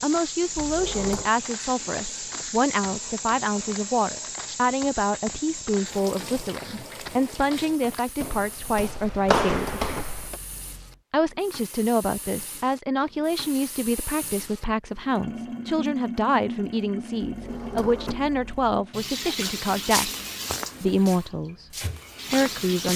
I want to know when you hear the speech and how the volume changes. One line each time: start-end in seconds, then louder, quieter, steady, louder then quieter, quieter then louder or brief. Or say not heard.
0.0-9.8 steady
11.1-20.1 steady
20.8-21.6 brief
22.3-22.9 brief.